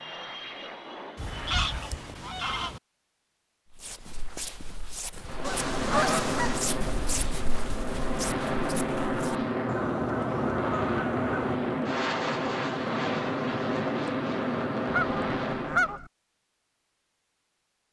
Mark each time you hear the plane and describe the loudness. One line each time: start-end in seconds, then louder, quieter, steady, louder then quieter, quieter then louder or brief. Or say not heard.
0.0-2.3 brief
5.2-16.0 steady.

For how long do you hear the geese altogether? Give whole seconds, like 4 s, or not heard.
6 s.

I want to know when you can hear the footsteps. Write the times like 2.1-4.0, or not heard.
3.7-9.5.